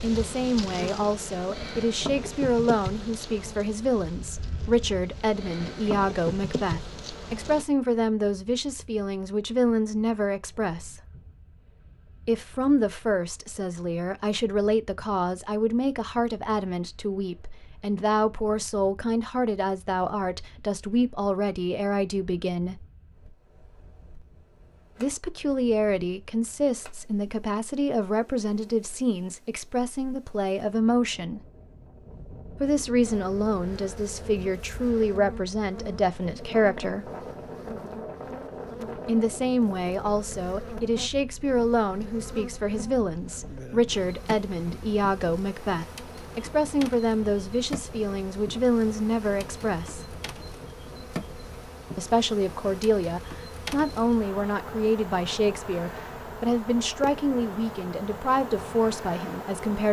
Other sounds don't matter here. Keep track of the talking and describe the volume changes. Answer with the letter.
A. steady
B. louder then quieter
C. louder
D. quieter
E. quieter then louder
A.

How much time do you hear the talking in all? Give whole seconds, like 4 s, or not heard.
51 s.